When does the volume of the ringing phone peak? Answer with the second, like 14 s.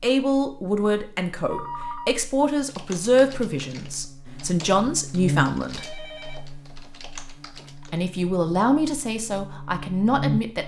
2 s.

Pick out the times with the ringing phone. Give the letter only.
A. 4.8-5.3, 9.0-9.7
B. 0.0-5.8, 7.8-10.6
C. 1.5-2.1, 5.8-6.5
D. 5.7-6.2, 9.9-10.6
C.